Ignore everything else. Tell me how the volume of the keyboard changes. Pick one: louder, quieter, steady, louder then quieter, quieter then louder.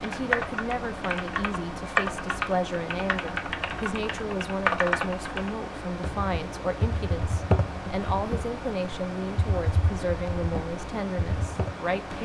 quieter.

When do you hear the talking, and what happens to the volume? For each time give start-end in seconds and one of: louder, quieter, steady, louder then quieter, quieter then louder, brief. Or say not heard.
0.0-12.1 steady.